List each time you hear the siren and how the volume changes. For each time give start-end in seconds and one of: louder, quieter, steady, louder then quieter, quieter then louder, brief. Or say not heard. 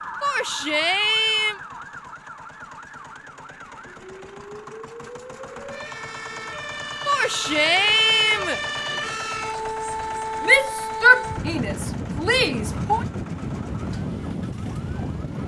0.0-15.4 louder.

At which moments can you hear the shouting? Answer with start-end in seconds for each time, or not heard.
0.2-1.6, 7.0-8.6, 10.4-13.1.